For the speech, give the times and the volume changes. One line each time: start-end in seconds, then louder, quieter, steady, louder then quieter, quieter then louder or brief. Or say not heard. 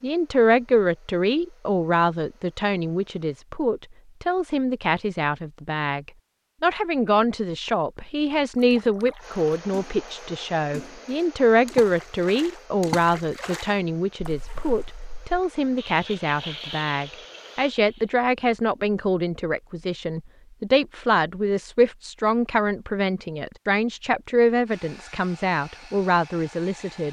0.0-27.0 steady.